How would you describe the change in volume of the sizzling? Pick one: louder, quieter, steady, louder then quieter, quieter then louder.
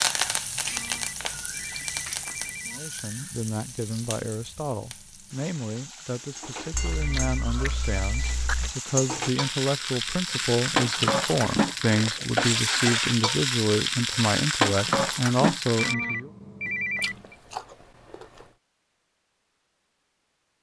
quieter then louder.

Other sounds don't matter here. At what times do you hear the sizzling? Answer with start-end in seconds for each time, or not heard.
0.0-15.9.